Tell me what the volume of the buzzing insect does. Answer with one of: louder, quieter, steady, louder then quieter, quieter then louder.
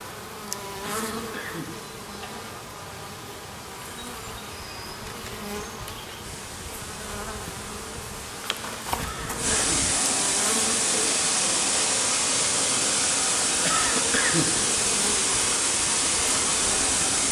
steady.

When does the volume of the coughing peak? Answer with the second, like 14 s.
14 s.